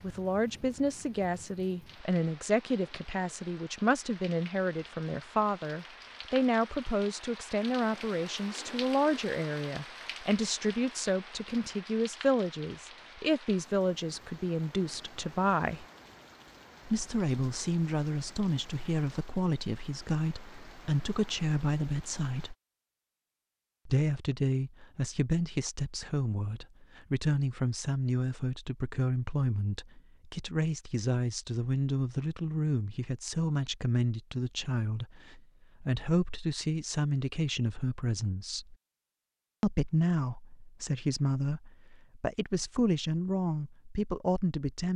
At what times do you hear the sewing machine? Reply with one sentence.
You can't hear the sewing machine here.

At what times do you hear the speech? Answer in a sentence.
You can hear the speech from 0.0 to 15.8 s, from 16.9 to 22.6 s, from 23.9 to 38.8 s and from 39.6 to 44.9 s.